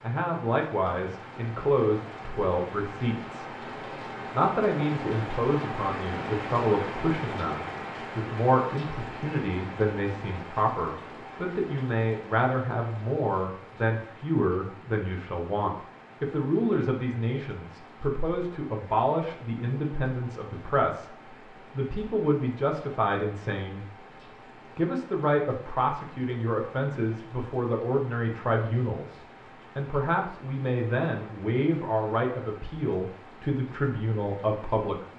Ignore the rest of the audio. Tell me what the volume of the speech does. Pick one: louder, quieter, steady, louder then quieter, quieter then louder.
steady.